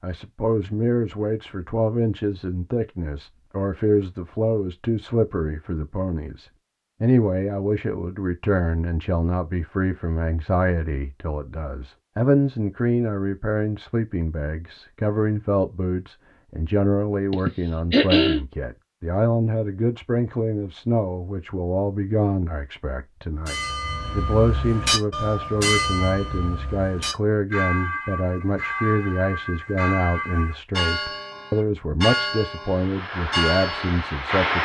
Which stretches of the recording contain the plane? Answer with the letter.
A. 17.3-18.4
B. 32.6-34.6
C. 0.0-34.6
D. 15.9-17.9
B.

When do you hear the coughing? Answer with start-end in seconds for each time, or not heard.
17.3-18.4.